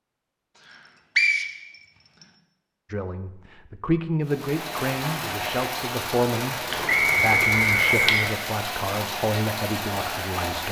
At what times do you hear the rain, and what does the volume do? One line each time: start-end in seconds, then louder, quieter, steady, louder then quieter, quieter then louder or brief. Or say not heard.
4.2-10.6 steady.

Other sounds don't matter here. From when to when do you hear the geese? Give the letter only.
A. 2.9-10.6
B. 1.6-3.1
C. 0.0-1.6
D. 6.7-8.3
D.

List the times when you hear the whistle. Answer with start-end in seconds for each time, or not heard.
1.1-2.2, 6.8-8.2.